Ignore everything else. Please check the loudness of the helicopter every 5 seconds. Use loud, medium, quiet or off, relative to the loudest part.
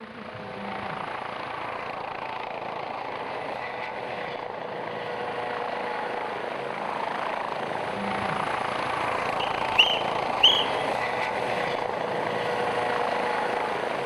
medium, loud, loud.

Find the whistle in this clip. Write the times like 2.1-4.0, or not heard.
9.4-10.8.